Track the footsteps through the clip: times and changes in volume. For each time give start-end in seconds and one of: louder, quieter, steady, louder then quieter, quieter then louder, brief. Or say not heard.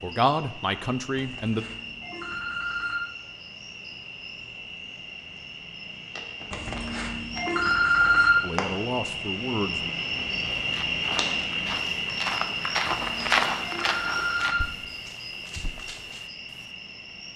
10.6-16.7 louder then quieter.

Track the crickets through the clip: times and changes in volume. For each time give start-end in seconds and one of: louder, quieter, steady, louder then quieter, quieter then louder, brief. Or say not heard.
0.0-17.3 louder then quieter.